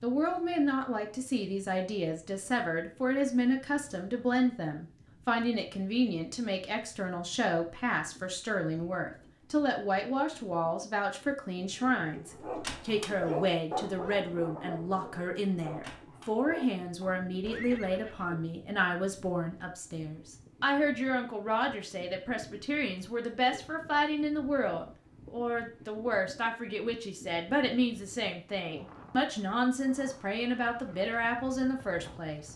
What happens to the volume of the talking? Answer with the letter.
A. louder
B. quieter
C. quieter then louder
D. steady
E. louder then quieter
D.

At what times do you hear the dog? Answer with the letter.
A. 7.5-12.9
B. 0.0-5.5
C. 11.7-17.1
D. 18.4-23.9
C.